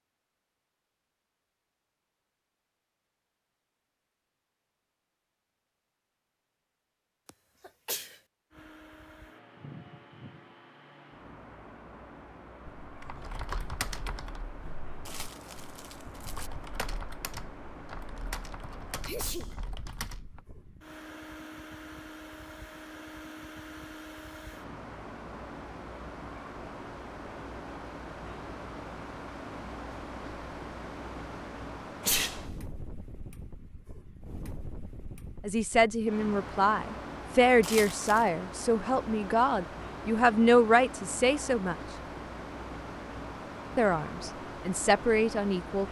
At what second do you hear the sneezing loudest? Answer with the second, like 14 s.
32 s.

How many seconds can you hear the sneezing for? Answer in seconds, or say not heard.
2 s.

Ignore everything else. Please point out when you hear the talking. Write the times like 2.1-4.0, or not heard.
35.5-41.8, 43.8-45.8.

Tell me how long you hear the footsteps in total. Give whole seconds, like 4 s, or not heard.
not heard.